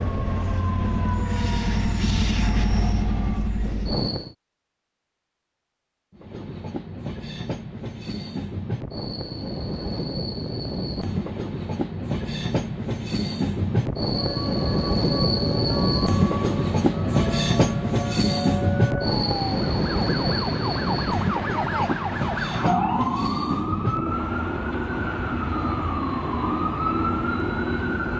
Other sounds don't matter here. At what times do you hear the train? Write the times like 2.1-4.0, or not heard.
0.0-4.3, 6.1-28.1.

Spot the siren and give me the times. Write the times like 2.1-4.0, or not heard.
0.0-3.5, 14.1-28.1.